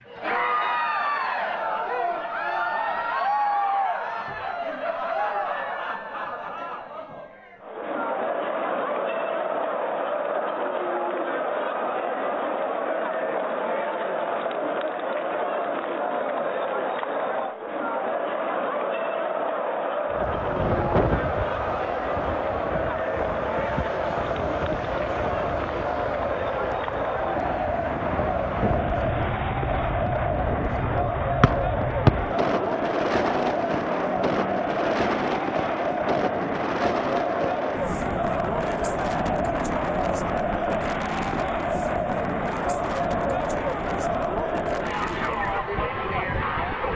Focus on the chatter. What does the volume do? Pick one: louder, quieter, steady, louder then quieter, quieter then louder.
steady.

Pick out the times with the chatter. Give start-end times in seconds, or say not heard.
0.0-46.9.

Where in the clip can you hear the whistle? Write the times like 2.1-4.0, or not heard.
31.4-32.1.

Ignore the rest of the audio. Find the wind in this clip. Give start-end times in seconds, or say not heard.
20.1-46.9.